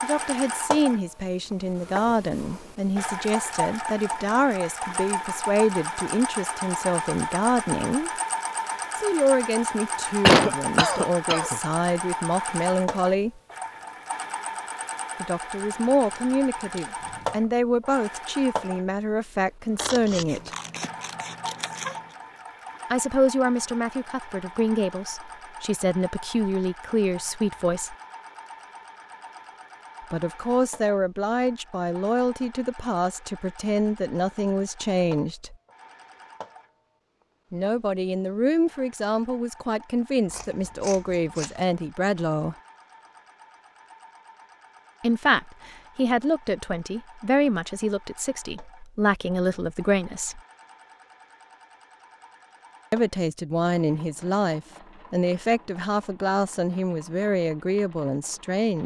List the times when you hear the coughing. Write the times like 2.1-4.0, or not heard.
10.2-11.6.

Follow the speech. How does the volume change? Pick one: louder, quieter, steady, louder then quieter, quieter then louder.
steady.